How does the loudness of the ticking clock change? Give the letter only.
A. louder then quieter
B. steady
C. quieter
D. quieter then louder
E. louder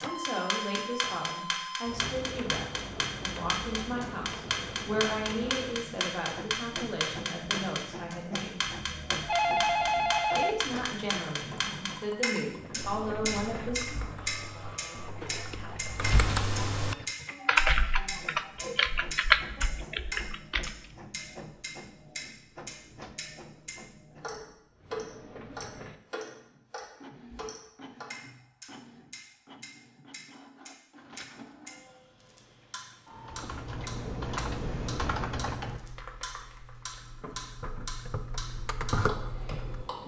C.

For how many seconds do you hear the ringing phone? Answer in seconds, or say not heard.
2 s.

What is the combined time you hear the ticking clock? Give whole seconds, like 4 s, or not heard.
40 s.